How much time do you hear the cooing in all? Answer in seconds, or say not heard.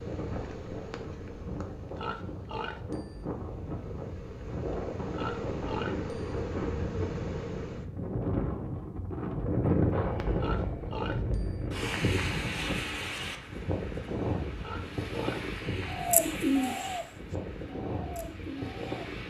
3 s.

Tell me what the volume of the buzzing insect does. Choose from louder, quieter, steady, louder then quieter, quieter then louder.
quieter then louder.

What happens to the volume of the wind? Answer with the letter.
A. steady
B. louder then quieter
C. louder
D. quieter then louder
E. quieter
B.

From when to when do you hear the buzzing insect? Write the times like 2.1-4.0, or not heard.
0.0-8.2.